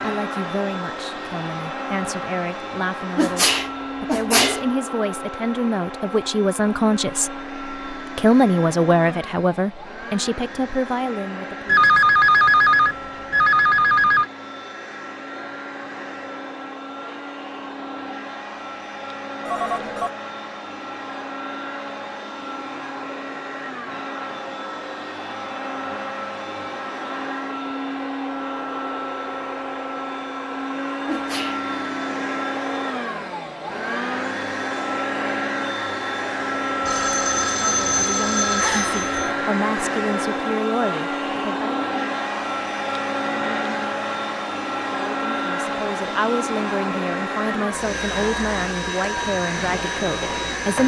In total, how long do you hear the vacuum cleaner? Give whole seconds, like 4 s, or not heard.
51 s.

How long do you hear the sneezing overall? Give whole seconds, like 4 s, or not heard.
2 s.